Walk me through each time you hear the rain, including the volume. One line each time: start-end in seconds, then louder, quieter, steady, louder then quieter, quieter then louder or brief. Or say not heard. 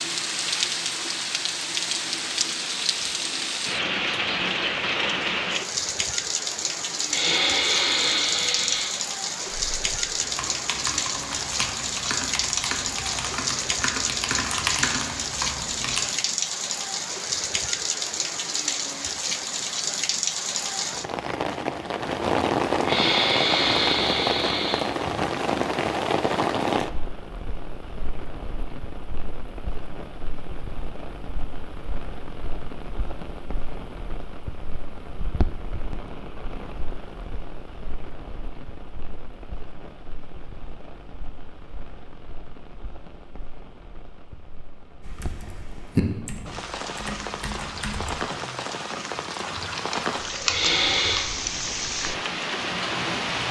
0.0-53.4 quieter then louder.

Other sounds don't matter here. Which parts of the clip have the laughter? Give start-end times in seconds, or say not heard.
not heard.